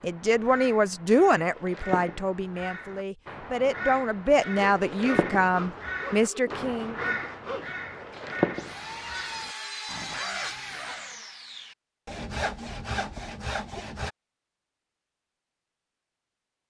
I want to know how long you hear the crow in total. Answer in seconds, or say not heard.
11 s.